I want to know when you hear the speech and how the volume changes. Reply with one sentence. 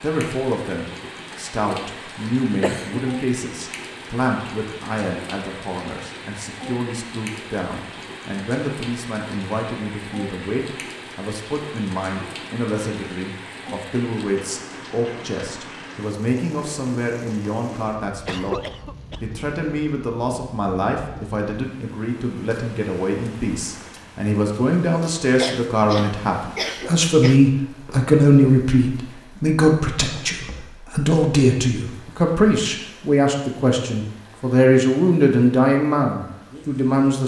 The speech can be heard from 0.0 to 37.2 s, getting louder.